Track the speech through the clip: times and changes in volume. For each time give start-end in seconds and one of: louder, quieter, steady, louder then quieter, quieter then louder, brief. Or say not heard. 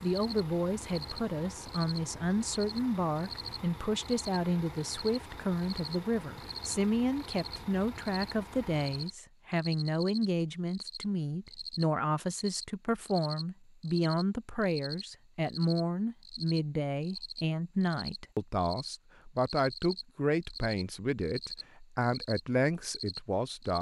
0.0-23.7 steady.